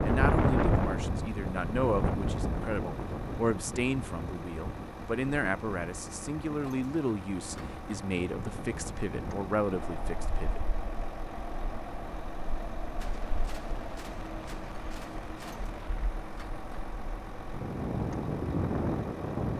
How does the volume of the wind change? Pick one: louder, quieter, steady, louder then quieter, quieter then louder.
quieter then louder.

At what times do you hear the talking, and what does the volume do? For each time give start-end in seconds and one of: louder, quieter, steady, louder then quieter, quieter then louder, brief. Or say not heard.
0.0-10.7 steady.